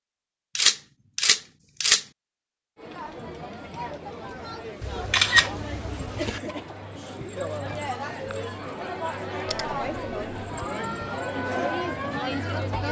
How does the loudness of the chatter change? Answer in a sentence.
The volume of the chatter goes up.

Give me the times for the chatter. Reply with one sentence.
You can hear the chatter from 2.8 to 12.8 s.